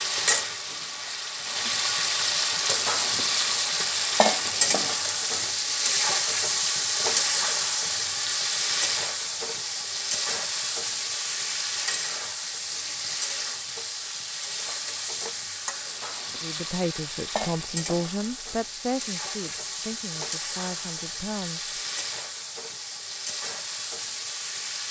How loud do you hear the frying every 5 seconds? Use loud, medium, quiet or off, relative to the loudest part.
loud, loud, medium, medium, medium.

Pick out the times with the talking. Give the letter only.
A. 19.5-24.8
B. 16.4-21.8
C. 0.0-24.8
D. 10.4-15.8
B.